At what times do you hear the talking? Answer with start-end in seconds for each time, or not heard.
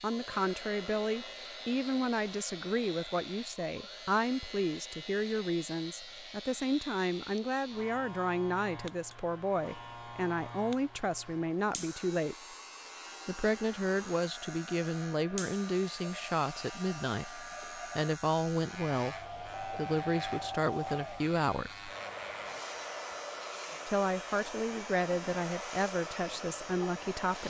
0.0-12.3, 13.2-21.9, 23.9-27.4.